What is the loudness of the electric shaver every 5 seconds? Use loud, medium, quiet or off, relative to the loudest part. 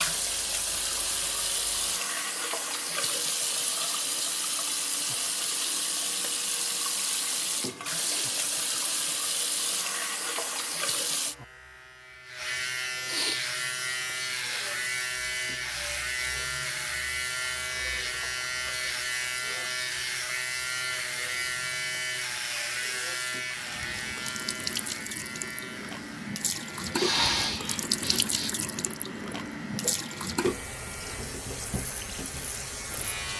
quiet, quiet, loud, loud, loud, medium, medium.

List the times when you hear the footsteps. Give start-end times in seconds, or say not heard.
not heard.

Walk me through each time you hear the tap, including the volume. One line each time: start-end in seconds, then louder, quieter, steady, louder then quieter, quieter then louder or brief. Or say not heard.
0.0-11.3 steady
13.3-33.3 louder.